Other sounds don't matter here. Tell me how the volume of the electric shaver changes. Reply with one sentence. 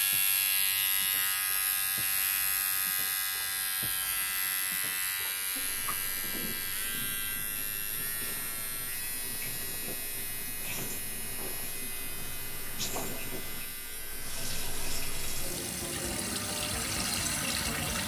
The loudness of the electric shaver goes down.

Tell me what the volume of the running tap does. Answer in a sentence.
The loudness of the running tap goes up.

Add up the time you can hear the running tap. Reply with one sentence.
The running tap can be heard for 18 seconds in total.